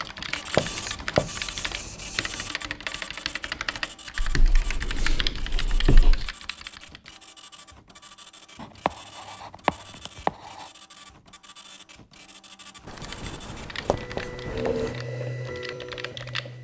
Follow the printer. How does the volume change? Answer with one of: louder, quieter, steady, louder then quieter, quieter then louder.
quieter then louder.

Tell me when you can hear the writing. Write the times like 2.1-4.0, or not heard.
0.6-2.5, 4.2-6.3, 8.6-10.7, 12.8-14.9.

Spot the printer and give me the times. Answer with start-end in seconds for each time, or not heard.
0.0-16.6.